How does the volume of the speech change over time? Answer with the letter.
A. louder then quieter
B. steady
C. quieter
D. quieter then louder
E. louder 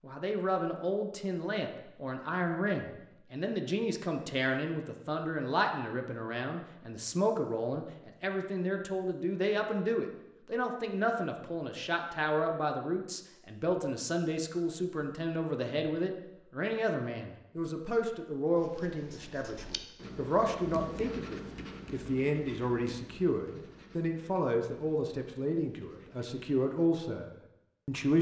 B.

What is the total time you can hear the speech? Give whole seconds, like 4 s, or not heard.
28 s.